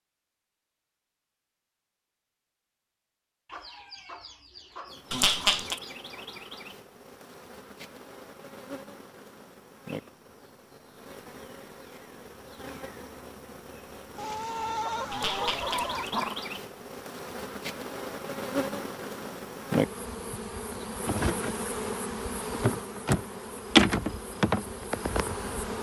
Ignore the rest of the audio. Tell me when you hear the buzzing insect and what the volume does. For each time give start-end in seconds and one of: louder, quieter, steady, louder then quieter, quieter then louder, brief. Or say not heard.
4.8-25.7 louder.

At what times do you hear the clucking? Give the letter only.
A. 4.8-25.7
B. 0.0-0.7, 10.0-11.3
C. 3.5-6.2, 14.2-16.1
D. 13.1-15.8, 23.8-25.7
C.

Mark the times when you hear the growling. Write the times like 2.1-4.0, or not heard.
5.1-5.8, 15.1-16.4.